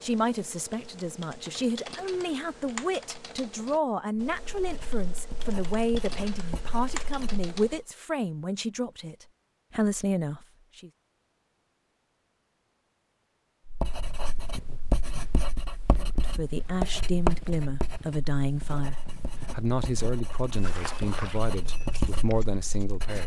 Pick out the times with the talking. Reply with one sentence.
You can hear the talking from 0.0 to 10.9 s and from 16.0 to 23.2 s.